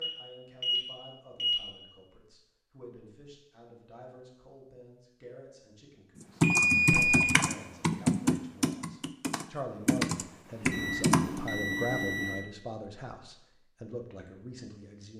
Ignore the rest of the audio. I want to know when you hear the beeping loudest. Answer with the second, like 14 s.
7 s.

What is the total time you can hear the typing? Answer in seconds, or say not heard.
5 s.